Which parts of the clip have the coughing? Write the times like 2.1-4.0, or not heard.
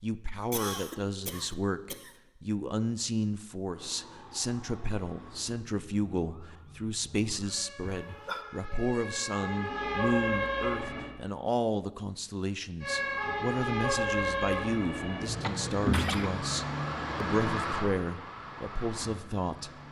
0.5-2.1, 7.8-8.4, 15.4-16.3.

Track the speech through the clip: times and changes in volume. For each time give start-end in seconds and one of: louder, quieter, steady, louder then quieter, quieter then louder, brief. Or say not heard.
0.0-19.7 steady.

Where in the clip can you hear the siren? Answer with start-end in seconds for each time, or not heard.
3.7-11.1, 12.8-19.8.